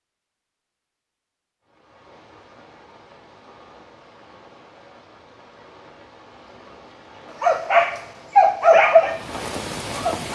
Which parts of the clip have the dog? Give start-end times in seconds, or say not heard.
7.4-10.3.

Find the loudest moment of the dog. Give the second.
9 s.